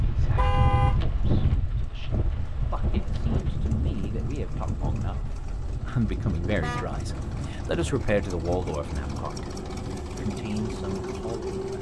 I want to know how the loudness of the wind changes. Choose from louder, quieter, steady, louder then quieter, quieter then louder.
quieter.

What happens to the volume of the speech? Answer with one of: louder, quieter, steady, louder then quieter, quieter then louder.
louder then quieter.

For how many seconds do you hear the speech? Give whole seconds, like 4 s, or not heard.
12 s.